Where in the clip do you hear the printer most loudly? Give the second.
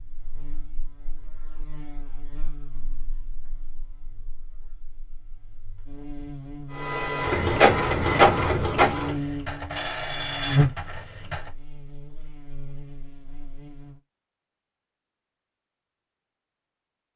8 s.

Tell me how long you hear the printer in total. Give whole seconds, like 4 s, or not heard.
5 s.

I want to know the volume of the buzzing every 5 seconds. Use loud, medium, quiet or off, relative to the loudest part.
quiet, medium, loud, off.